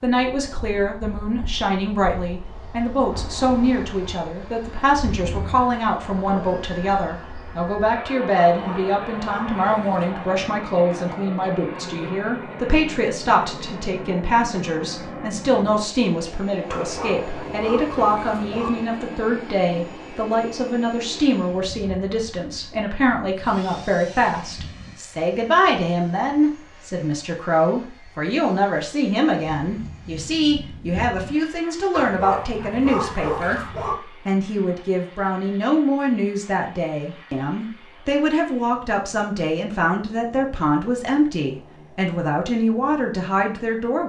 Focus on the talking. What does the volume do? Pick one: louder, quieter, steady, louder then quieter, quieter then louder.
steady.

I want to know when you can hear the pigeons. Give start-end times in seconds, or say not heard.
not heard.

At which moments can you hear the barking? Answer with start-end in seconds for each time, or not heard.
8.4-10.2, 16.7-18.7, 31.9-34.0.